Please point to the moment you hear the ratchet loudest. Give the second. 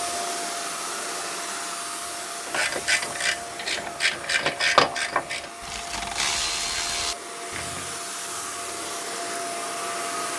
5 s.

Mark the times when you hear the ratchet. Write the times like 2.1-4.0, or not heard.
2.5-7.9.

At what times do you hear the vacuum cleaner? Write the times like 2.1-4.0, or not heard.
0.0-10.3.